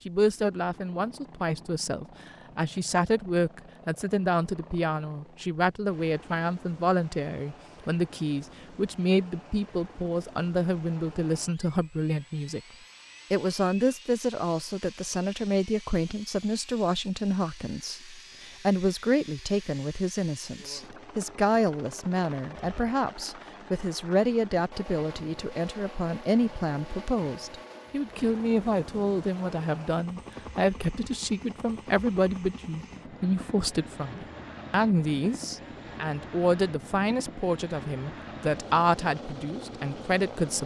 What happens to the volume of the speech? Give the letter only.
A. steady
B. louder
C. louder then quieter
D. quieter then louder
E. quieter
A.